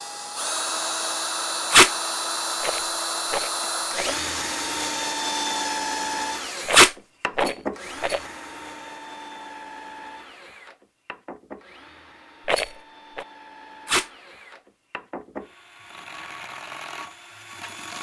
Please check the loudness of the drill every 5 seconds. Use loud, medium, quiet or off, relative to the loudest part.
loud, loud, quiet, medium.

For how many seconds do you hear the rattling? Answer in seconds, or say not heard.
4 s.